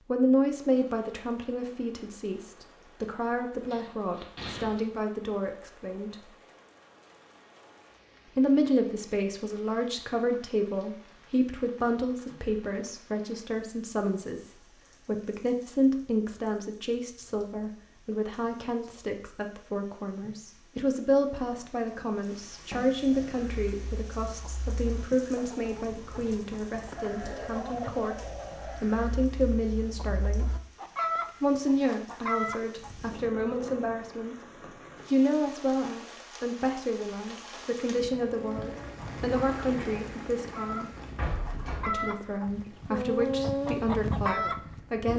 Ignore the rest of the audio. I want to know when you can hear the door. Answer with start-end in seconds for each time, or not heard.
3.7-4.8, 21.4-22.8, 41.1-42.0.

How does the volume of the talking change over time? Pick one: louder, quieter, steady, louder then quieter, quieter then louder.
steady.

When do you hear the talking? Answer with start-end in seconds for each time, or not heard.
0.0-6.2, 8.2-30.6, 31.4-41.0, 41.9-45.1.